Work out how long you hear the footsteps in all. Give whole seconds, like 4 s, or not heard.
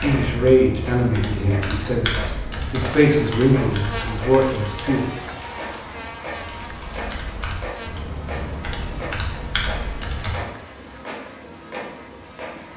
not heard.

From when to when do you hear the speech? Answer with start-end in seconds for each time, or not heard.
0.0-5.0.